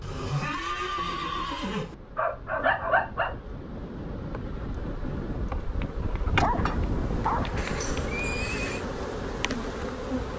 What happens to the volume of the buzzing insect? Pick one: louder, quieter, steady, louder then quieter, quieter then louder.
louder.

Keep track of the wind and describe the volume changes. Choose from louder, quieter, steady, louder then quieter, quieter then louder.
louder then quieter.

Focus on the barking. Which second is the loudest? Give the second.
3 s.